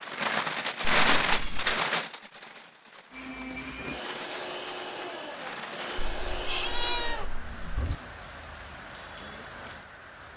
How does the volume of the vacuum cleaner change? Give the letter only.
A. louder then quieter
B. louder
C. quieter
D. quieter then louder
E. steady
E.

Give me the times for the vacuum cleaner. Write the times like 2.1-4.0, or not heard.
3.1-7.3.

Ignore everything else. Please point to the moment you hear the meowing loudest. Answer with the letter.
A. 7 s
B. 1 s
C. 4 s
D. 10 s
A.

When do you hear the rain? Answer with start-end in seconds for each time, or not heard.
0.0-10.3.